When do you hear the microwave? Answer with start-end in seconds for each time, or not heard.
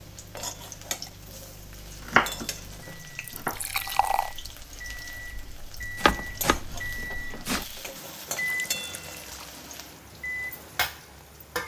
0.0-11.6.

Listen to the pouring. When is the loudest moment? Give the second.
4 s.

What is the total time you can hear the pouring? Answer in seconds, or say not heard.
2 s.